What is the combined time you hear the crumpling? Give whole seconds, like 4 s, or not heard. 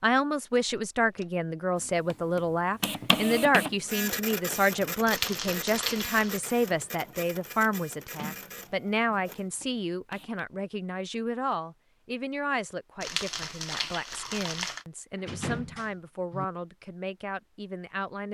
3 s.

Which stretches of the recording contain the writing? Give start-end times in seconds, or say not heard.
not heard.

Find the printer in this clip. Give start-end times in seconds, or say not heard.
1.8-10.4.